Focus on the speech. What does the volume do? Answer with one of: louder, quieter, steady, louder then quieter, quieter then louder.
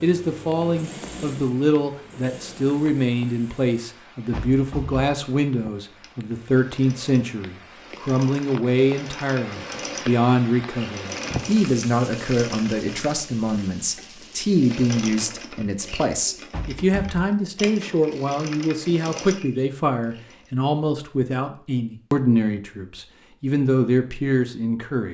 steady.